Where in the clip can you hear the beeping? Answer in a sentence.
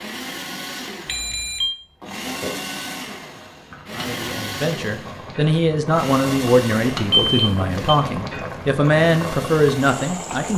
You can hear the beeping from 1.1 to 1.8 s and from 7.1 to 7.8 s.